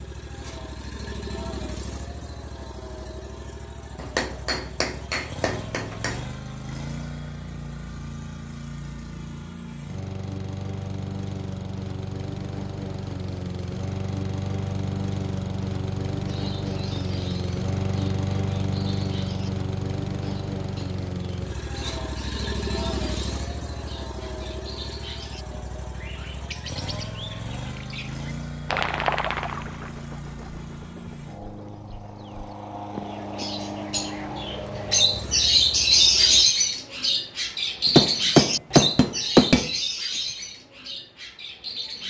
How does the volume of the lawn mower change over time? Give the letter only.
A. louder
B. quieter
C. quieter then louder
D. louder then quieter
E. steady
D.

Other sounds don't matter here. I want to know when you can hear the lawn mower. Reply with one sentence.
You can hear the lawn mower from 0.0 to 36.5 s.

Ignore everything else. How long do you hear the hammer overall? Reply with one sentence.
The hammer can be heard for 4 seconds in total.